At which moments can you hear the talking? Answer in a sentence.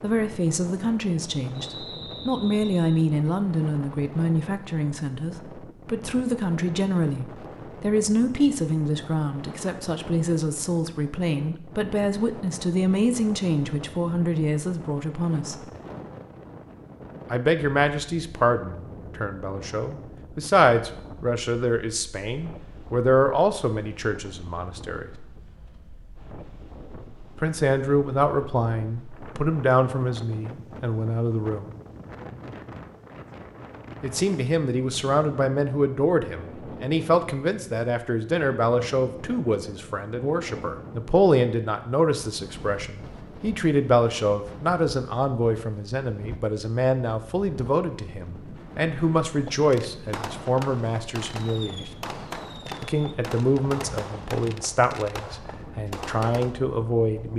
You can hear the talking from 0.0 to 15.7 s, from 17.3 to 25.1 s, from 27.4 to 31.7 s, from 34.0 to 51.9 s and from 52.8 to 57.3 s.